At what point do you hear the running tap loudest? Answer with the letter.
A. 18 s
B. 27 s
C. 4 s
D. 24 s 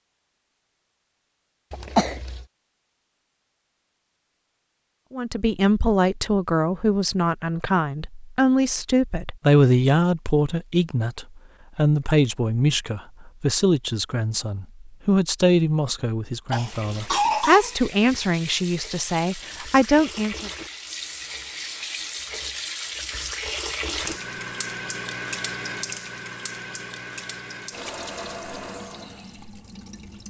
D.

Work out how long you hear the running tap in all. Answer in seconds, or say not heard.
14 s.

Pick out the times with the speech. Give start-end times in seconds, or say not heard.
5.1-20.5.